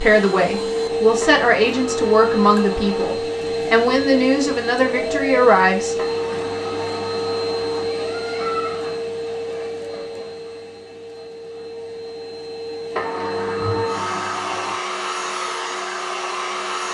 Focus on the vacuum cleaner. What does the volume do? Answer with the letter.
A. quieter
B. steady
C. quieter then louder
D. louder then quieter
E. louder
C.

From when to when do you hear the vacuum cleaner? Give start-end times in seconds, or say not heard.
0.0-16.8.